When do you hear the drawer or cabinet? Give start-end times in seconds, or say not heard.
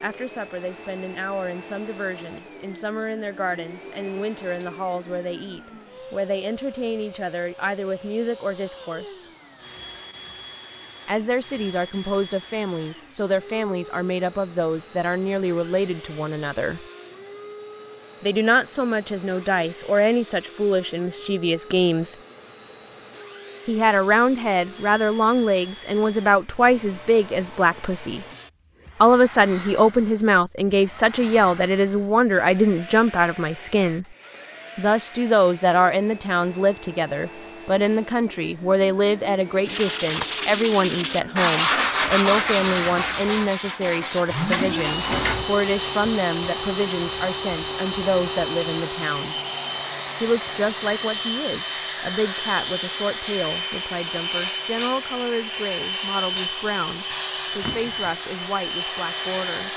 44.5-45.5.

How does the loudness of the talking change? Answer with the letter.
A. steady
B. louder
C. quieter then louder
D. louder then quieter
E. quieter
D.